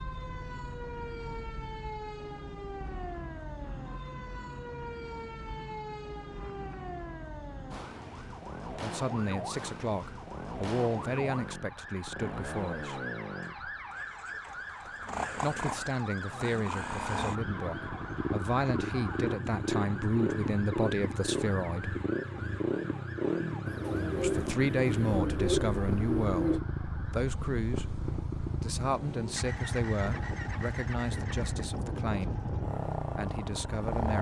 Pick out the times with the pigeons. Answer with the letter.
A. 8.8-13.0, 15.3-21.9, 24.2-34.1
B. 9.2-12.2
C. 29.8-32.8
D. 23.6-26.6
D.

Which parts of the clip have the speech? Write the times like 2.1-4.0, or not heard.
8.8-13.0, 15.3-21.9, 24.2-34.1.